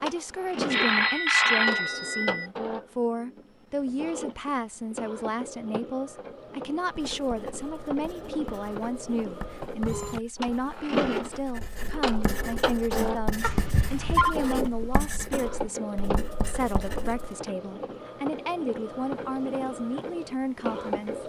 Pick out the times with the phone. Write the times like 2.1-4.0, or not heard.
0.7-2.5, 13.4-14.3.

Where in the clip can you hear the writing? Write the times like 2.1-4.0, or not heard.
6.8-17.4.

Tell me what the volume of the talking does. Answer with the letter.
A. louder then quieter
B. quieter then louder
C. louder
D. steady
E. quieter
D.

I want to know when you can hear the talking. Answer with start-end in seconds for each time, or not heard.
0.0-21.2.